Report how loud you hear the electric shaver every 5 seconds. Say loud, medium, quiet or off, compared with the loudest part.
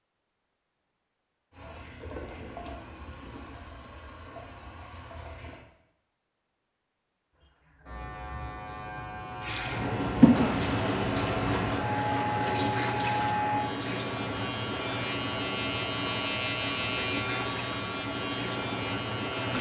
off, medium, loud, loud.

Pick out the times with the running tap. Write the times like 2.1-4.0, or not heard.
1.5-5.7, 9.4-19.5.